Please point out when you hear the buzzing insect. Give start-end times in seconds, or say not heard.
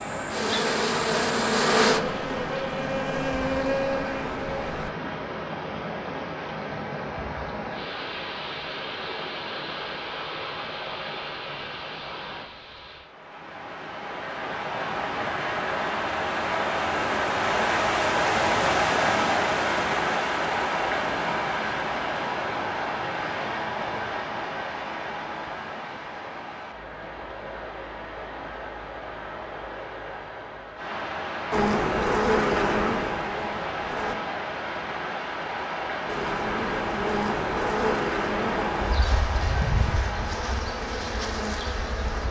0.0-4.9, 31.5-34.1, 36.0-42.2.